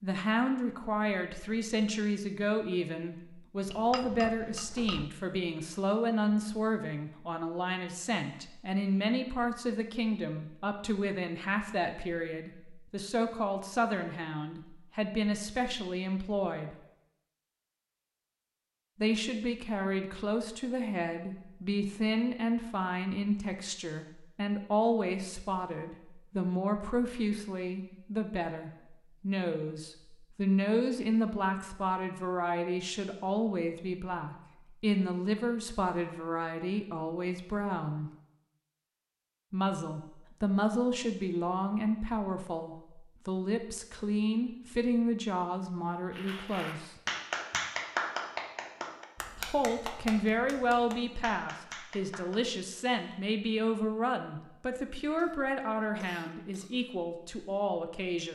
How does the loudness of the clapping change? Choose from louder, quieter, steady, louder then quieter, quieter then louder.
quieter.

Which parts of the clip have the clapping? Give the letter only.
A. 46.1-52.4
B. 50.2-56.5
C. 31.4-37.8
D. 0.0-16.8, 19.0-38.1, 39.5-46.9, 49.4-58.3
A.